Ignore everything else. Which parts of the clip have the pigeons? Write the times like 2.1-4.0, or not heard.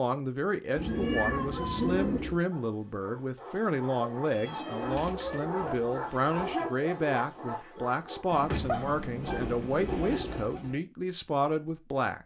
0.8-2.4, 4.5-6.5, 9.2-10.8.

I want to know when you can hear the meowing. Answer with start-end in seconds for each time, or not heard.
0.8-2.1, 4.2-5.5, 8.3-10.1.